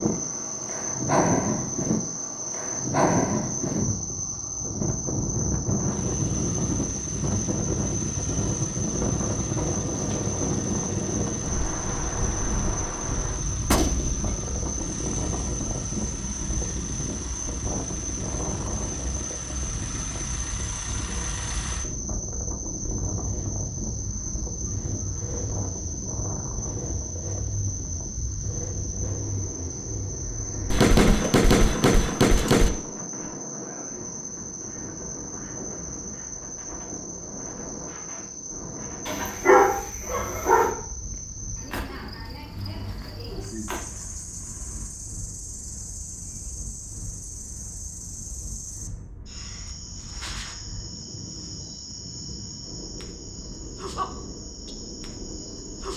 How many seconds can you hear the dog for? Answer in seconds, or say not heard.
2 s.